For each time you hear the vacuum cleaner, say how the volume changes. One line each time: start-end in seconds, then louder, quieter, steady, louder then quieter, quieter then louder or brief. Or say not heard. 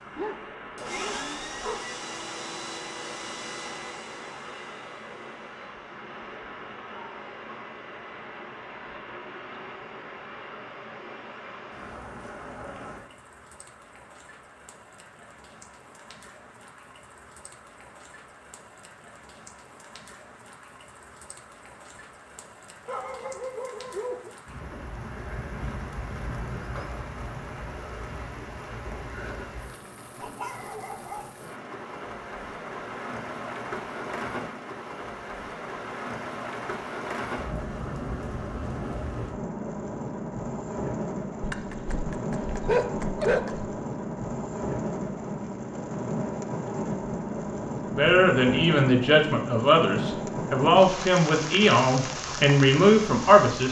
0.0-12.0 quieter.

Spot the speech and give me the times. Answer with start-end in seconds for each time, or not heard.
47.9-53.6.